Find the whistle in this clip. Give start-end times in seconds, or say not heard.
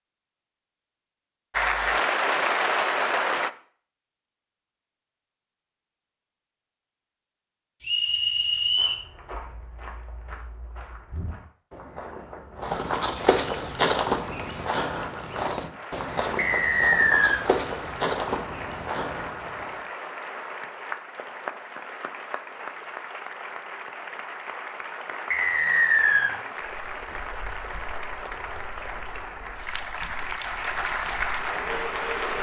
7.8-9.0, 16.4-17.4, 25.3-26.3.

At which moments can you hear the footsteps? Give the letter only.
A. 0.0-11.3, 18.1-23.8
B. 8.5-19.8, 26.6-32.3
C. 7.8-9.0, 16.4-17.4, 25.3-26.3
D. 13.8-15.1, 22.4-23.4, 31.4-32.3
B.